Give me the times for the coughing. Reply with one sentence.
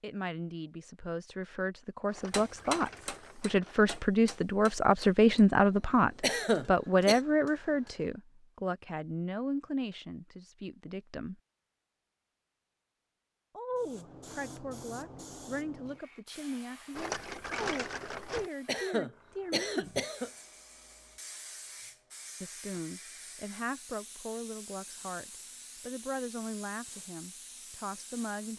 You can hear the coughing from 6.2 to 7.2 s and from 18.6 to 20.3 s.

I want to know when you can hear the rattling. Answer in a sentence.
You can hear the rattling from 2.0 to 4.0 s and from 16.9 to 18.5 s.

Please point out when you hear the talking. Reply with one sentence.
You can hear the talking from 0.0 to 11.4 s, from 13.6 to 19.9 s and from 22.4 to 28.5 s.